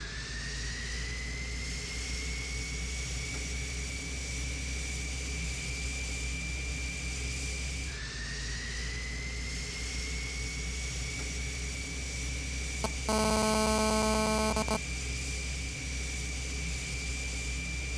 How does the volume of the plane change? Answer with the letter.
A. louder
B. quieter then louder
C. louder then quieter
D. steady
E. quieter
D.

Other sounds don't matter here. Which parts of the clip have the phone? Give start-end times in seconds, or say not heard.
12.8-14.8.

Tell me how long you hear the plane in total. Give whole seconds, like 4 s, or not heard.
18 s.